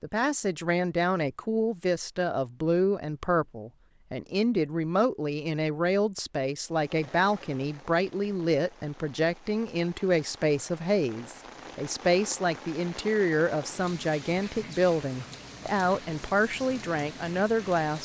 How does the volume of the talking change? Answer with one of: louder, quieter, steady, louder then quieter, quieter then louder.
steady.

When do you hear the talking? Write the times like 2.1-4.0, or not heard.
0.0-17.9.